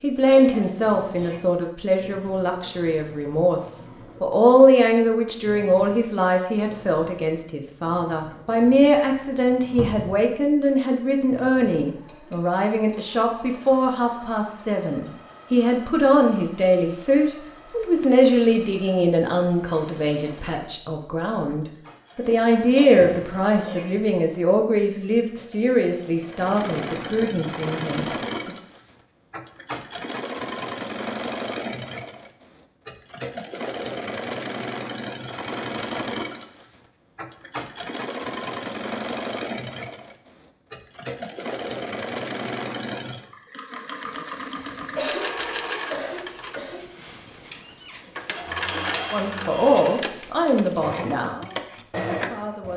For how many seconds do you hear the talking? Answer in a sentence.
The talking can be heard for 32 seconds in total.